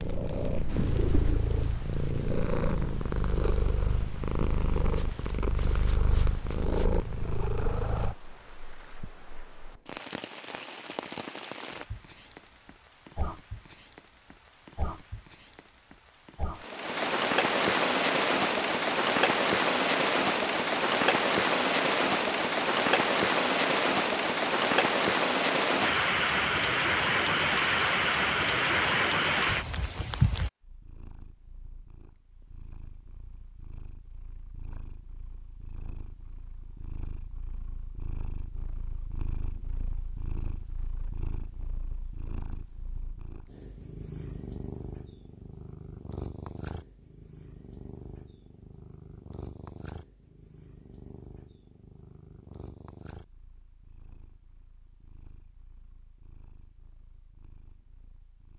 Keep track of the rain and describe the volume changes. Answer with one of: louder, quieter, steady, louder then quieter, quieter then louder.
louder.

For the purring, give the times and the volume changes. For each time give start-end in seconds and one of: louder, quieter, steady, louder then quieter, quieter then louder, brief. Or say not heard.
0.0-8.2 steady
30.6-58.5 louder then quieter.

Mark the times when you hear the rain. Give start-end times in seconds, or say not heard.
0.0-30.5.